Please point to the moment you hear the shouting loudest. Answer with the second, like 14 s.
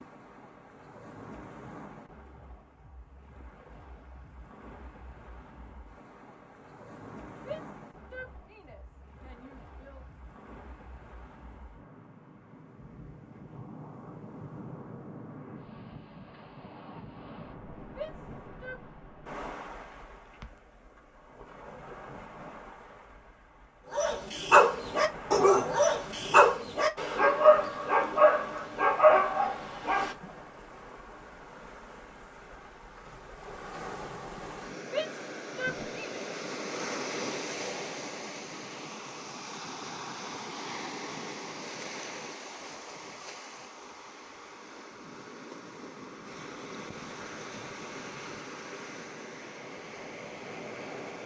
35 s.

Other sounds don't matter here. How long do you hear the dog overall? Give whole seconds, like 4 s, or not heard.
6 s.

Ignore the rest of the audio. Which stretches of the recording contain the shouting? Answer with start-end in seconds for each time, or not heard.
7.3-10.0, 17.9-18.9, 34.9-36.2.